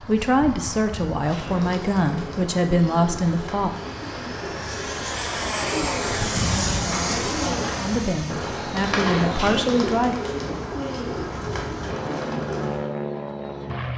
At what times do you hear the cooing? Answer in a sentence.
The cooing can be heard from 1.1 to 12.9 s.